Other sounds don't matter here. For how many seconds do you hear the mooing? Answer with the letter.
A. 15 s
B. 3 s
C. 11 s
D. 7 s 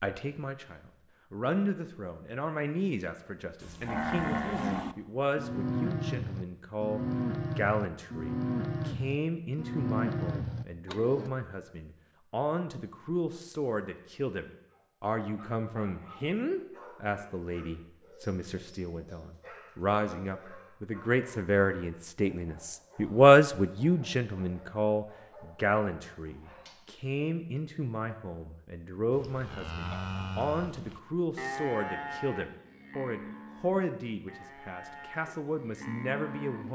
A.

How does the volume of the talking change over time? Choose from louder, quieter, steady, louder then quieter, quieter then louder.
louder then quieter.